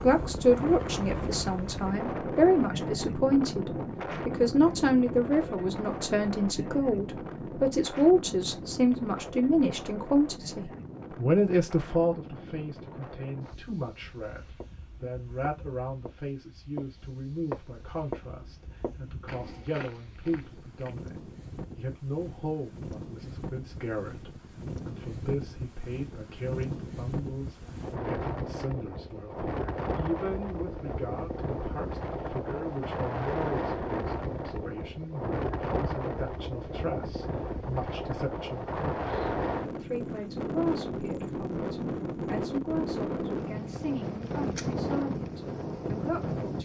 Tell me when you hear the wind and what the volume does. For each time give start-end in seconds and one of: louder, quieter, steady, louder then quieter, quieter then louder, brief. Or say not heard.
0.0-46.6 quieter then louder.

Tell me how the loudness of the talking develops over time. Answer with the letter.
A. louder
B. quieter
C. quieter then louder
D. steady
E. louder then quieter
B.